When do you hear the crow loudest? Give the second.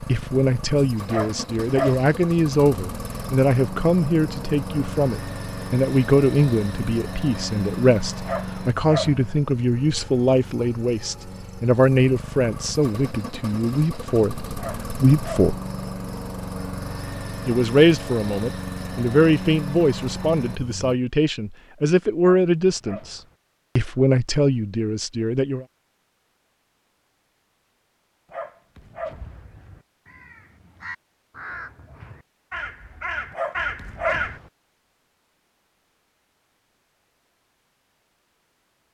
34 s.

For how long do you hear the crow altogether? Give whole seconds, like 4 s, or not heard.
5 s.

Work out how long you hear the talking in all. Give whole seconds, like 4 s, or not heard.
24 s.